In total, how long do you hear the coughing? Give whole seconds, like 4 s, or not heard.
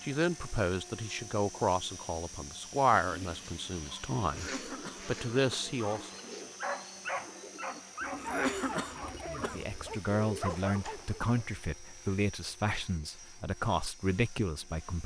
3 s.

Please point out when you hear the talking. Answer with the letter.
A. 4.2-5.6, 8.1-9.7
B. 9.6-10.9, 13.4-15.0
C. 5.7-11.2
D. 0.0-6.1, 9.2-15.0
D.